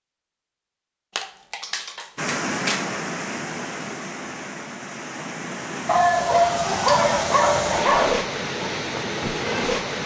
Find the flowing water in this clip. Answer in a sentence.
You can hear the flowing water from 2.1 to 10.0 s.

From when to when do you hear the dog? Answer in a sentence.
You can hear the dog from 1.1 to 2.9 s and from 5.8 to 8.2 s.